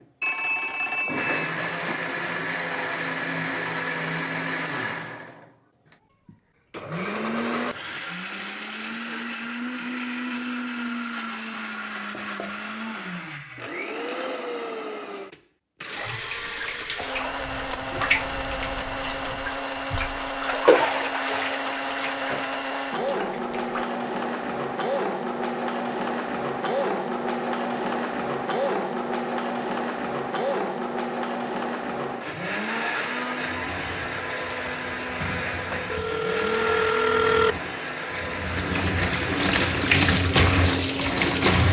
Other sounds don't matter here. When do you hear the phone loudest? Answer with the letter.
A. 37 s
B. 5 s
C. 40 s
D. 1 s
A.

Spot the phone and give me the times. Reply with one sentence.
The phone can be heard from 0.2 to 2.0 s and from 35.9 to 37.6 s.